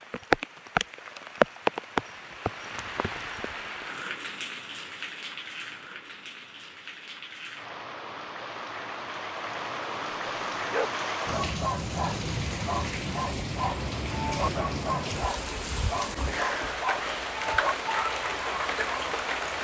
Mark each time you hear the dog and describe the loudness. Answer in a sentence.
The dog can be heard from 10.7 to 19.1 s, at a steady volume.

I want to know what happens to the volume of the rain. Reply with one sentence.
The volume of the rain goes down, then up.